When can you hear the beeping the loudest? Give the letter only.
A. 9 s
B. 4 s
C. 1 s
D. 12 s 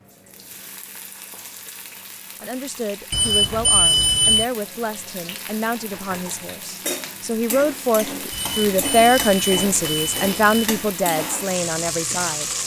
B.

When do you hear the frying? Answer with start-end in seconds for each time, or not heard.
0.0-12.6.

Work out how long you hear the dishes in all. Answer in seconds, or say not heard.
not heard.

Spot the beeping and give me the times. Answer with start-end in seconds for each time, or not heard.
3.1-4.5, 8.3-10.8.